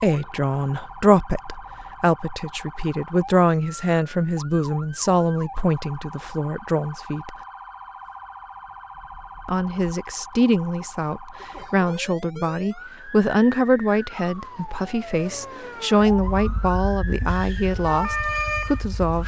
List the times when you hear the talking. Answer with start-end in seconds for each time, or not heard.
0.0-7.3, 9.4-19.2.